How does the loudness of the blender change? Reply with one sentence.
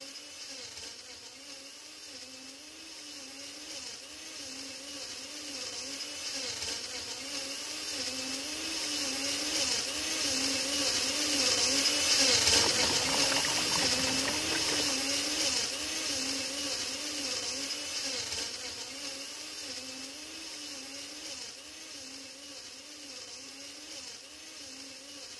The volume of the blender goes up, then down.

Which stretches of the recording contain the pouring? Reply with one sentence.
The pouring can be heard from 12.6 to 15.0 s.